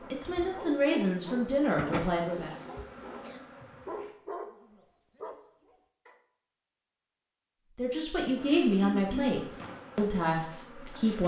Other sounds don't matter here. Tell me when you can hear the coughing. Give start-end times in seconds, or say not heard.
1.9-3.5, 8.4-9.3.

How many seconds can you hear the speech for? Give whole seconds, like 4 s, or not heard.
6 s.